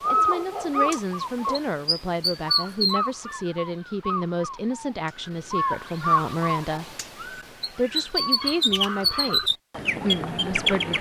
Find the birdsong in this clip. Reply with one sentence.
The birdsong can be heard from 0.0 to 10.9 s.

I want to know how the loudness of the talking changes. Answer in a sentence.
The volume of the talking stays about the same.